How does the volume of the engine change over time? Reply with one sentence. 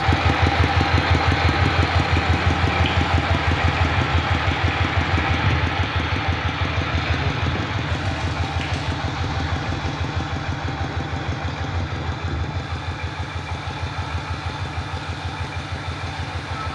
The loudness of the engine goes down.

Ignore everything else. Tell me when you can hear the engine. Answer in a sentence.
You can hear the engine from 0.0 to 16.7 s.